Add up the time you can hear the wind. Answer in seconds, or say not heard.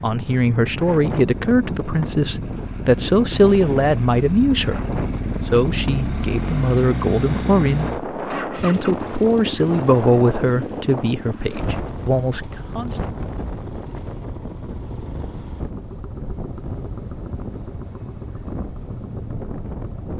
20 s.